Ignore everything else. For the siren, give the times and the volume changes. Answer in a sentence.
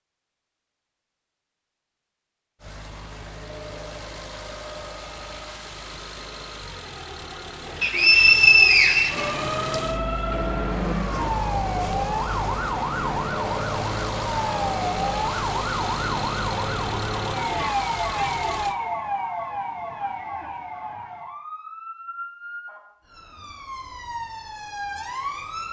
The siren can be heard from 9.1 to 25.6 s, getting quieter.